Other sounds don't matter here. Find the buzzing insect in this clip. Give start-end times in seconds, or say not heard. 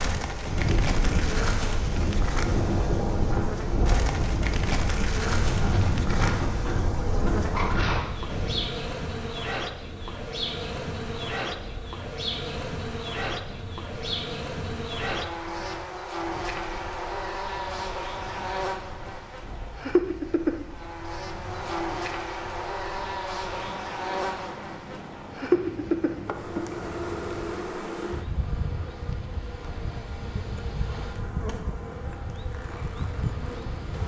0.0-34.0.